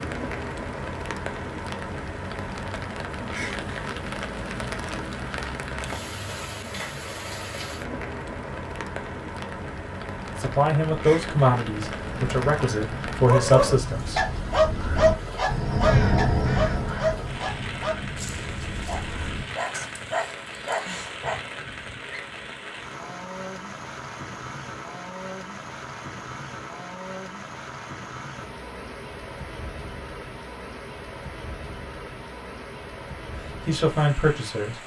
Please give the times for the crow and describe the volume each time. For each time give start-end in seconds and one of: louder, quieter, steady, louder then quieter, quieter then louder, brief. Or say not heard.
11.8-19.9 louder then quieter.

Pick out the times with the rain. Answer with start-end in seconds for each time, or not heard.
0.0-34.8.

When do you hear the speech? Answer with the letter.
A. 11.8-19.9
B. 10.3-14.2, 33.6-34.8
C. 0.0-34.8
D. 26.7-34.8
B.